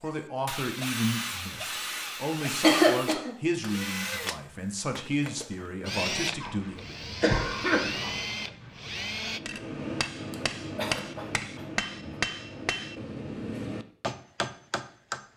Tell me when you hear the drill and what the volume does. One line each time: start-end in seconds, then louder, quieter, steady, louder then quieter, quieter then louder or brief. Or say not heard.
0.1-9.4 steady.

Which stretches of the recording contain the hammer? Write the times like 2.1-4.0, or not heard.
9.3-15.2.